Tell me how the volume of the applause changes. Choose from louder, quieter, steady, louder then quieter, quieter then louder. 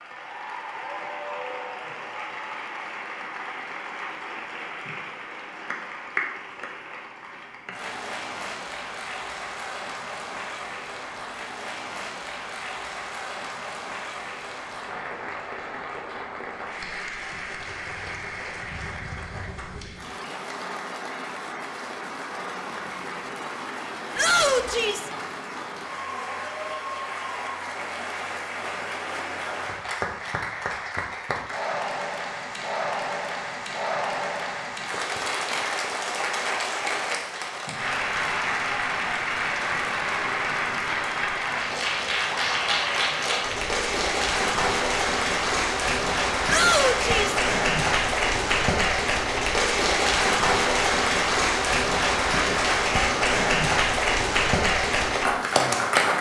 louder.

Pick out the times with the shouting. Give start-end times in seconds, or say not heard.
24.1-25.1, 46.5-47.4.